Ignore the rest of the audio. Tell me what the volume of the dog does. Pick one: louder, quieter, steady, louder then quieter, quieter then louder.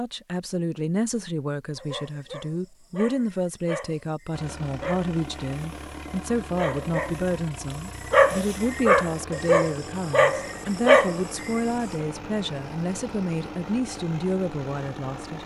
louder.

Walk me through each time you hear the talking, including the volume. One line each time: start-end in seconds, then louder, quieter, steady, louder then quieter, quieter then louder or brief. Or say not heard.
0.0-15.4 steady.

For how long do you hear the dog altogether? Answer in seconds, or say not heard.
10 s.